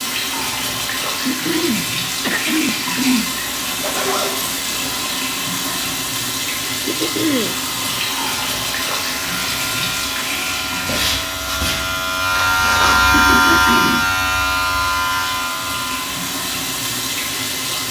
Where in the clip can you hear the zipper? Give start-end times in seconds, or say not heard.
3.8-5.1, 12.3-13.2.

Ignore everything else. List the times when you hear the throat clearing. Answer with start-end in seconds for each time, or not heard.
1.2-3.3, 6.8-7.5, 13.1-14.1.